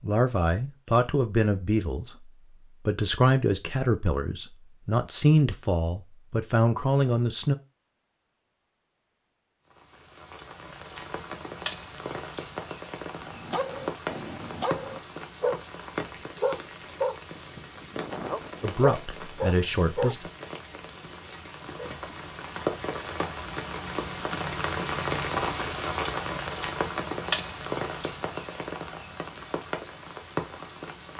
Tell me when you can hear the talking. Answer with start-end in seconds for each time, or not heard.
0.0-7.5, 18.6-20.3.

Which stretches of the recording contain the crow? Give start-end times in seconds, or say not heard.
not heard.